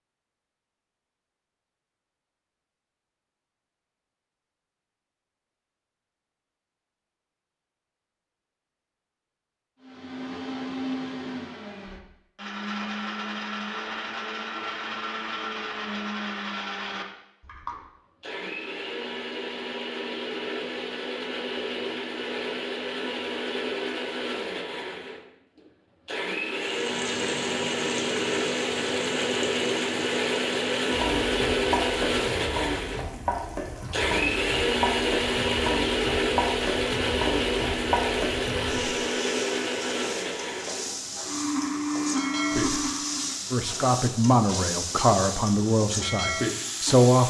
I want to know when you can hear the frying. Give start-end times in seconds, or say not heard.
26.6-47.2.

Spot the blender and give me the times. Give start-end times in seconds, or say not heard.
9.8-43.4.